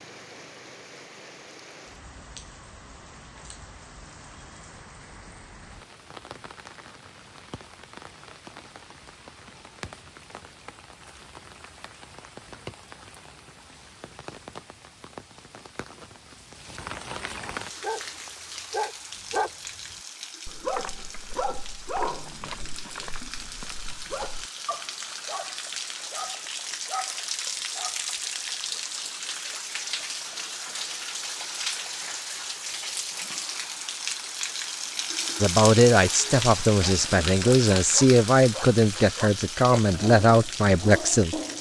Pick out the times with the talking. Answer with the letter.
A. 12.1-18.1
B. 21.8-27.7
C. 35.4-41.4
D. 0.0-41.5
C.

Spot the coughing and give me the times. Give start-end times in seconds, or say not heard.
not heard.